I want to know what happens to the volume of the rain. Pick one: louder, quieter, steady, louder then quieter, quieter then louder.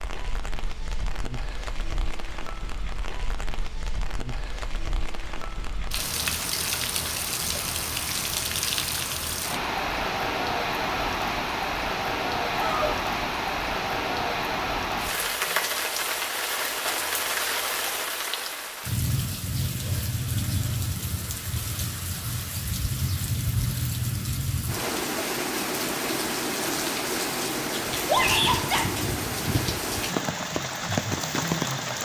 louder.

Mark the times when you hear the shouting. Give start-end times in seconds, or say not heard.
12.5-12.9, 28.1-28.9.